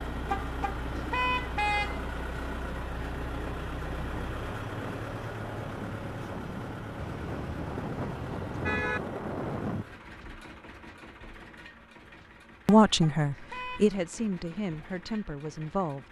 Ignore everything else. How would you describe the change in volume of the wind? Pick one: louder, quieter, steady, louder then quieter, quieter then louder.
louder.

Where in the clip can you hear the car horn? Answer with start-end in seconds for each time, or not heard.
0.2-2.0, 7.0-9.0, 12.8-13.8.